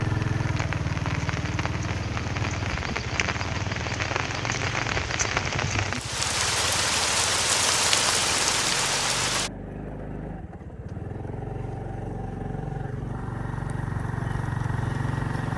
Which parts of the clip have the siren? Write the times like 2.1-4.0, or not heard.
not heard.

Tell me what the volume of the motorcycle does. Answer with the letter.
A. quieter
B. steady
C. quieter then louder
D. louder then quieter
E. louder
C.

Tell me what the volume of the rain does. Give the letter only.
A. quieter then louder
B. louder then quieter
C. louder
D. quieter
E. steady
C.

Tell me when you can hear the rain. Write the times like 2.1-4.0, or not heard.
0.0-9.5.